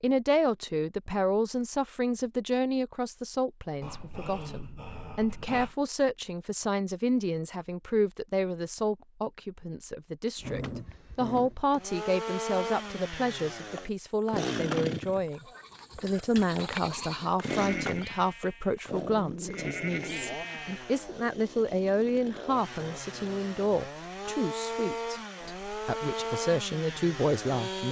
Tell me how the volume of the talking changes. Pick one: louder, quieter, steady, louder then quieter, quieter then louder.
steady.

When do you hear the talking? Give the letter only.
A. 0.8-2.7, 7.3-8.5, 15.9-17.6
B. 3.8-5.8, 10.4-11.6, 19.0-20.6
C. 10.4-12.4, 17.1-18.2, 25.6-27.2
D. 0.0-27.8
D.